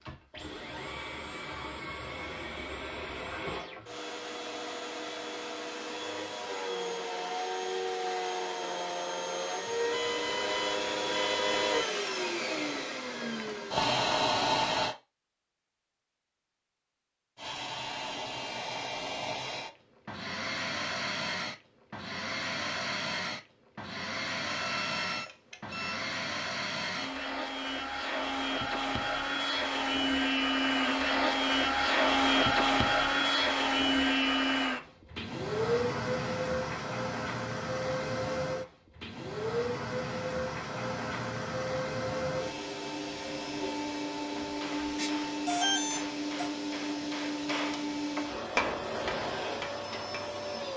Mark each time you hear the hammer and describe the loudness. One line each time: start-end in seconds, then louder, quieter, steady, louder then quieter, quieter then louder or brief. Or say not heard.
44.1-50.4 louder then quieter.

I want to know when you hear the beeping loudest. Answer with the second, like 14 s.
46 s.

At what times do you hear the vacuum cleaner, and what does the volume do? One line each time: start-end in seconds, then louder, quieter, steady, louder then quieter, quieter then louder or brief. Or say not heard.
0.0-14.9 louder
17.4-50.7 louder then quieter.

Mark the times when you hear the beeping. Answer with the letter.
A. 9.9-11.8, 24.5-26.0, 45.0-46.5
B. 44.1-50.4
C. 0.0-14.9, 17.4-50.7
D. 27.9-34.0
A.